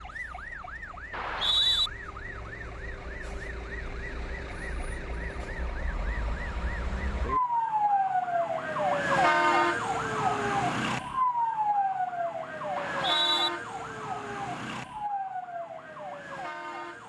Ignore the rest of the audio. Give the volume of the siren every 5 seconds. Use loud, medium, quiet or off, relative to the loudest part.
quiet, loud, loud, medium.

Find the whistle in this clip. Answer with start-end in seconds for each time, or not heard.
1.1-1.9, 12.8-13.5.